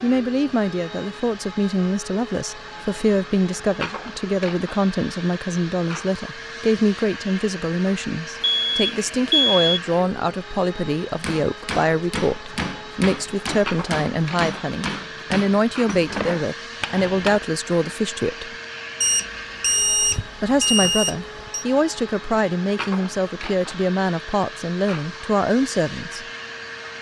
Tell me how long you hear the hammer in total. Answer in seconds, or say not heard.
6 s.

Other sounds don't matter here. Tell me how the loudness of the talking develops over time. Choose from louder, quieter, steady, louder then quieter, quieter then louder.
steady.